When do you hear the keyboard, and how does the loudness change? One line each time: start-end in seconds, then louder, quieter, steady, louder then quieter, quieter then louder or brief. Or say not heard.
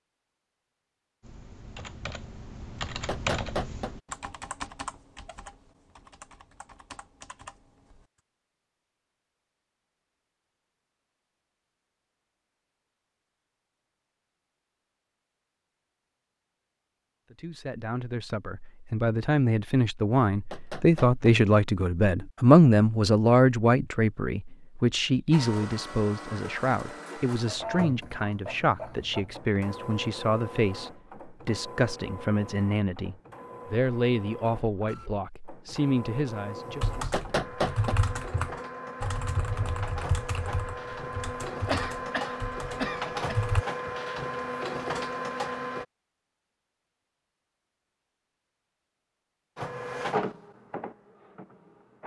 1.2-8.1 louder then quieter
36.6-43.6 quieter.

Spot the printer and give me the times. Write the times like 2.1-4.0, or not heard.
25.3-45.9, 49.5-52.0.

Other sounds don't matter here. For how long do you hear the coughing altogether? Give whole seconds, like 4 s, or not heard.
2 s.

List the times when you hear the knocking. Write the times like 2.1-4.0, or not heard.
3.0-4.0, 20.5-21.1, 37.1-38.0.